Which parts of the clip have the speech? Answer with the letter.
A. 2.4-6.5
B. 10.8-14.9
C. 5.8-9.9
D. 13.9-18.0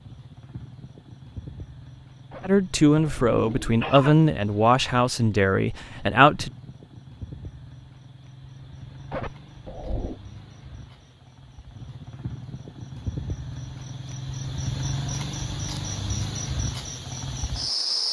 A.